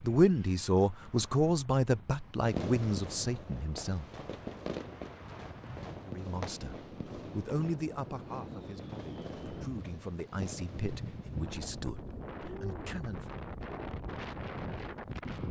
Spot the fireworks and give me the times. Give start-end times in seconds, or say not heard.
2.4-11.8.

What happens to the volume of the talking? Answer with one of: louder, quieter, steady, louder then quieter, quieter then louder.
quieter.